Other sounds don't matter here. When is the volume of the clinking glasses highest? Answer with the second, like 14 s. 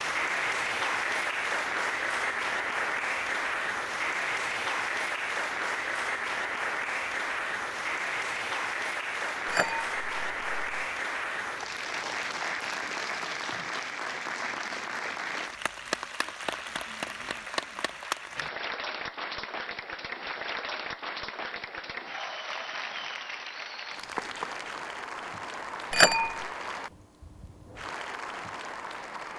26 s.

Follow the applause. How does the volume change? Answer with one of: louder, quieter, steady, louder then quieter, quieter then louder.
quieter.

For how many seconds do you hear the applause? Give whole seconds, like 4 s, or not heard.
29 s.